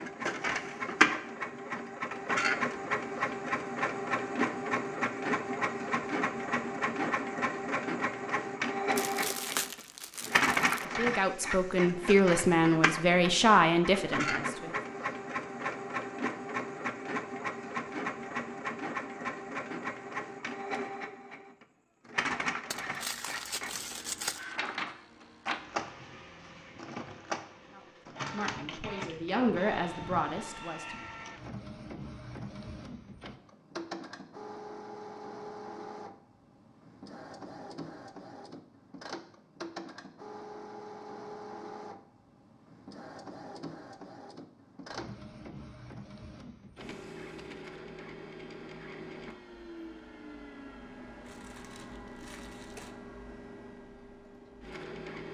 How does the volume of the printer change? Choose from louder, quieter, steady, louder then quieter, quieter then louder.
quieter.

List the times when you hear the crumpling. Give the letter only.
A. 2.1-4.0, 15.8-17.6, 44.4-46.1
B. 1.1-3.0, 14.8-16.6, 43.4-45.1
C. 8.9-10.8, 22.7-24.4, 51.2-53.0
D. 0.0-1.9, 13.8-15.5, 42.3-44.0
C.